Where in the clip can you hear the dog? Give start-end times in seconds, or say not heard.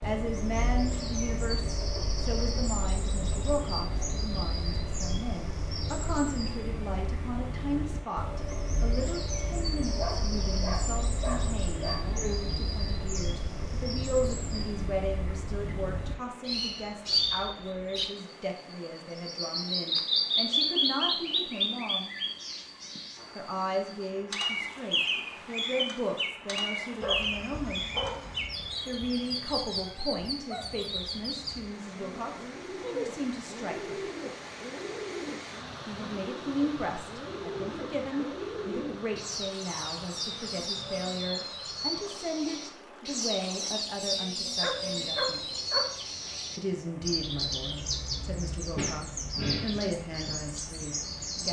9.9-12.4, 27.0-28.5, 44.6-46.3.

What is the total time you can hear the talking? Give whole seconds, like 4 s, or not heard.
46 s.